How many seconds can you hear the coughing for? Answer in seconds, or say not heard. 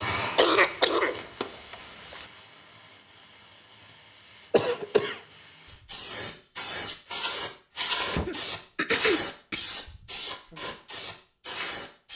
4 s.